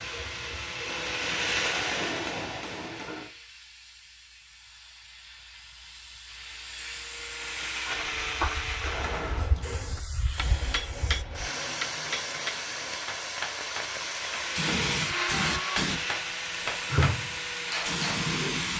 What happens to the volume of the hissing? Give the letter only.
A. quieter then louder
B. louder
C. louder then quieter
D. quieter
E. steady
B.